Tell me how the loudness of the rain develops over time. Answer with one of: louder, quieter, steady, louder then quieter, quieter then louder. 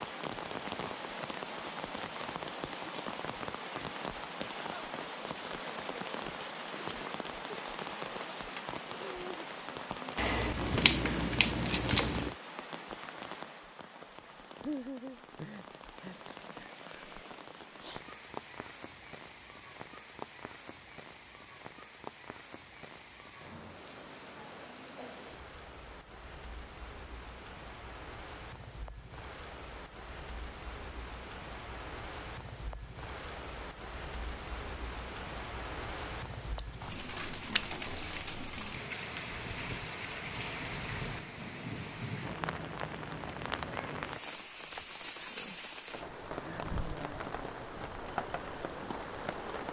quieter then louder.